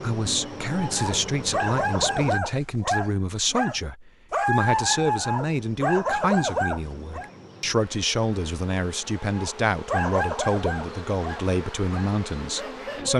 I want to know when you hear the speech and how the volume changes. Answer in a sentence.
The speech can be heard from 0.0 to 13.1 s, at a steady volume.